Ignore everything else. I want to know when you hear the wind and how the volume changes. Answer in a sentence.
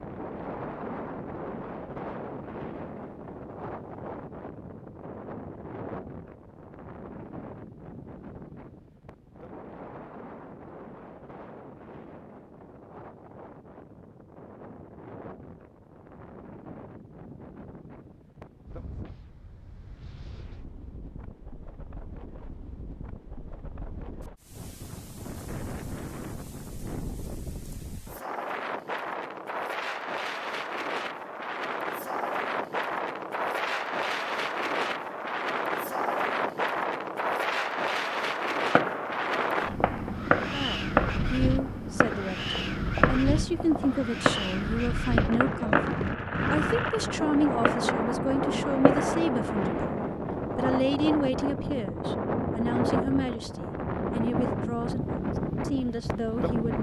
The wind can be heard from 0.0 to 56.7 s, getting quieter then louder.